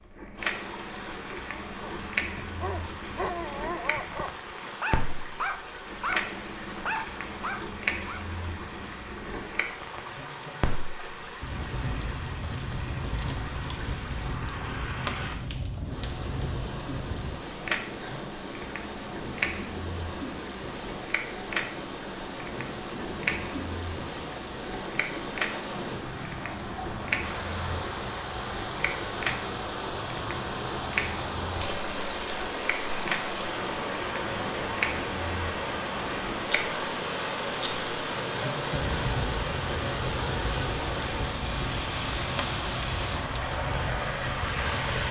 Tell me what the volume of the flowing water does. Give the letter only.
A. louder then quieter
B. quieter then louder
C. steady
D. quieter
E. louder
E.